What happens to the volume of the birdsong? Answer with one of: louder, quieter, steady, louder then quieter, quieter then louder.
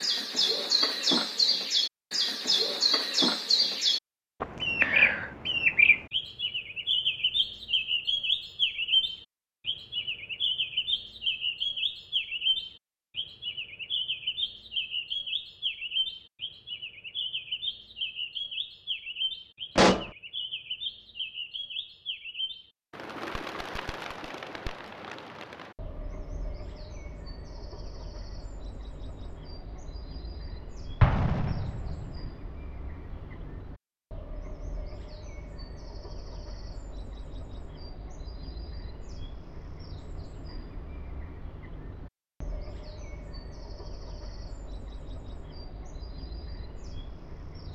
quieter.